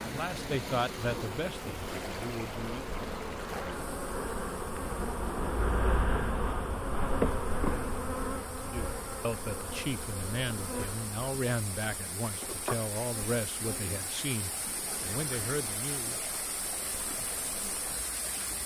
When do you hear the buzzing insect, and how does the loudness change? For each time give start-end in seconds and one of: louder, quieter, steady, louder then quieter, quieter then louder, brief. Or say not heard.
0.0-18.6 louder then quieter.